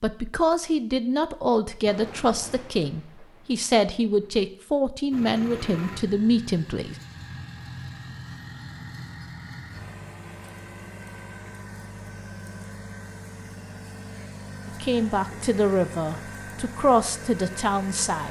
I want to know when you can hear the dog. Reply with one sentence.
The dog can't be heard in this clip.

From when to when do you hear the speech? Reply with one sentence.
You can hear the speech from 0.0 to 7.0 s and from 14.7 to 18.2 s.